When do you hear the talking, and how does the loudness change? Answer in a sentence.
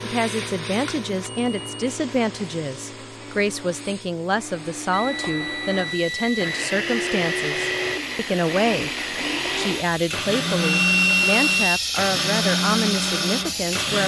The talking can be heard from 0.0 to 8.9 s, at a steady volume; and from 9.6 to 14.0 s, at a steady volume.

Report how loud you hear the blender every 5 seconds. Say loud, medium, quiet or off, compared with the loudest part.
quiet, loud, loud.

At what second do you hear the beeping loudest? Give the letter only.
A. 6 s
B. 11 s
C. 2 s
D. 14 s
B.